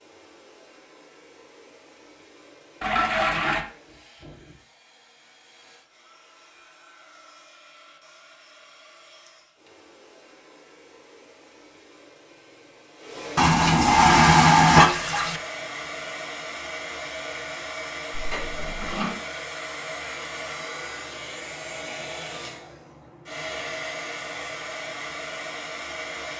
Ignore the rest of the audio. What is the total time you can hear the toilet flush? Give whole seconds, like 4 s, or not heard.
4 s.